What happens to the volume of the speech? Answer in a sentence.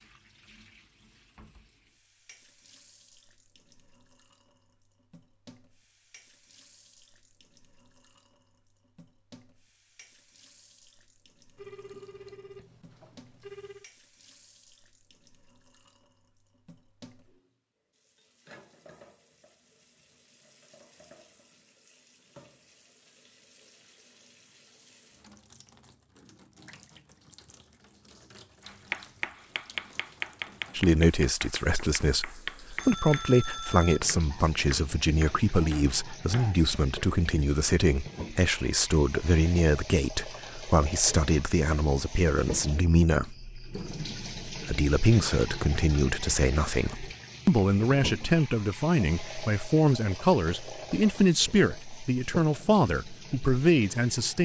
The loudness of the speech stays about the same.